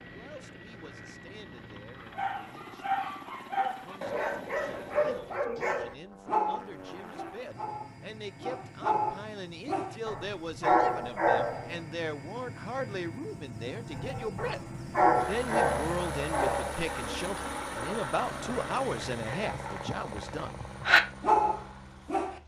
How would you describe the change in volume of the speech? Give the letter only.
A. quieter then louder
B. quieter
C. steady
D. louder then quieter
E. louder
E.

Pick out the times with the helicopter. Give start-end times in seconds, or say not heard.
0.0-22.4.